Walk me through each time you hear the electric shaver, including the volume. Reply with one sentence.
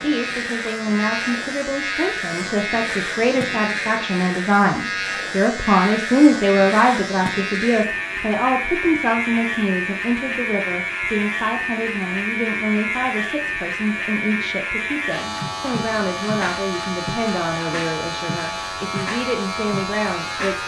You can hear the electric shaver from 0.0 to 20.6 s, at a steady volume.